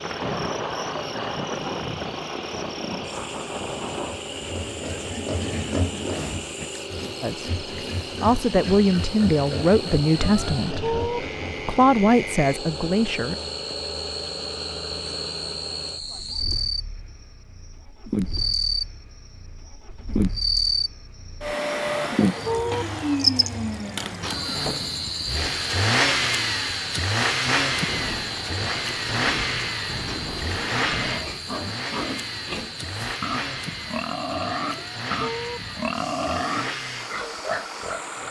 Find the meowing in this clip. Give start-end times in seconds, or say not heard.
10.2-11.2, 21.9-22.9, 34.6-35.6.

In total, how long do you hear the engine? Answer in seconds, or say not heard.
38 s.